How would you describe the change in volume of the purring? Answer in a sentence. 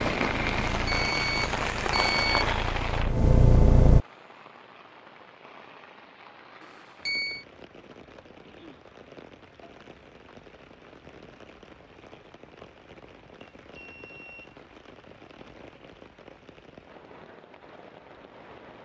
The loudness of the purring goes up.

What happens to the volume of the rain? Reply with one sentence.
The loudness of the rain goes down.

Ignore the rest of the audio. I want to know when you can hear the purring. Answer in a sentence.
You can hear the purring from 0.0 to 4.0 s.